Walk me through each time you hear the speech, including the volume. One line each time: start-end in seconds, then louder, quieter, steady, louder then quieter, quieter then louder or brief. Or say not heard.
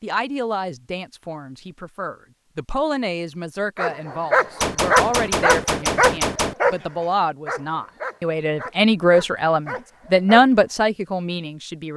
0.0-11.9 louder.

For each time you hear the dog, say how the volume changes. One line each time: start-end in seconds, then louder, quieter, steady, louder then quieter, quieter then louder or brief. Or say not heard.
3.8-10.4 quieter.